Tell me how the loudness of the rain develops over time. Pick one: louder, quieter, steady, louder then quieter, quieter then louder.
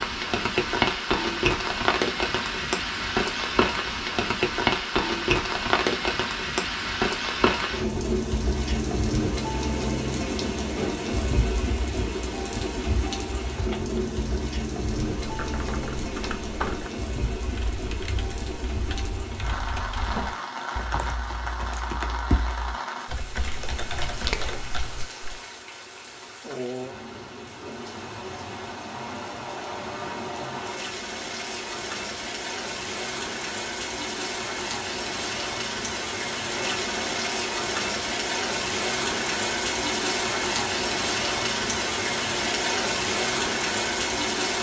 quieter then louder.